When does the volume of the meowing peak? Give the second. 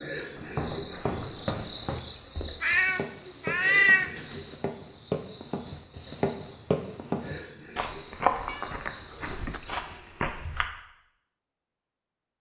4 s.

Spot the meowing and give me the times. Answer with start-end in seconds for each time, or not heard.
2.6-4.4, 8.4-9.6.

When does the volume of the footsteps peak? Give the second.
8 s.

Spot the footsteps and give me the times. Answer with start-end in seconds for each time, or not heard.
0.3-10.7.